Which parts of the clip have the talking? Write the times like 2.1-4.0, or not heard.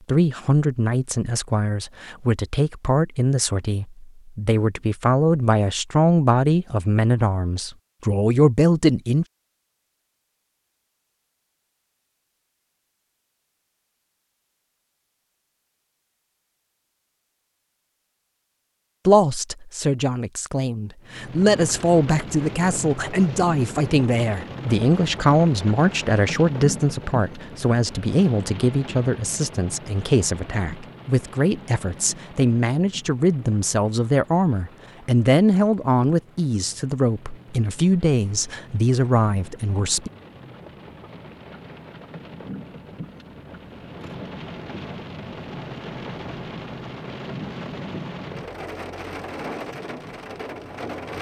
0.1-9.2, 19.1-40.1.